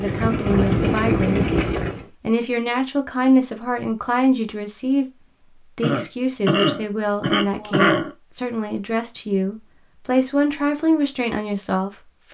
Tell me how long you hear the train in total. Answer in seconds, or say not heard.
2 s.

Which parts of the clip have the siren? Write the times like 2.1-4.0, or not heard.
not heard.